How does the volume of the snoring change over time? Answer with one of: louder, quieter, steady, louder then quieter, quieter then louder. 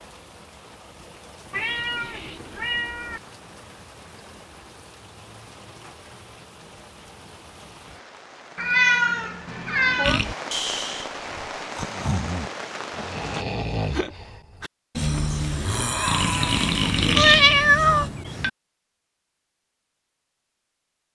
louder.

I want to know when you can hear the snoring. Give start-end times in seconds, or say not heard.
10.0-18.1.